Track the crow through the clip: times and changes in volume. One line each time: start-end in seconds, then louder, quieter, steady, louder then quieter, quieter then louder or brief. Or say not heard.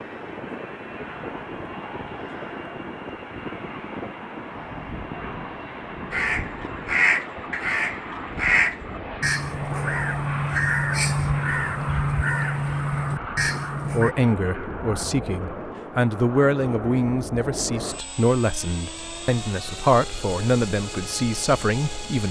6.1-14.2 steady.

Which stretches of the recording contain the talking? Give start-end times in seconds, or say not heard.
13.9-22.2.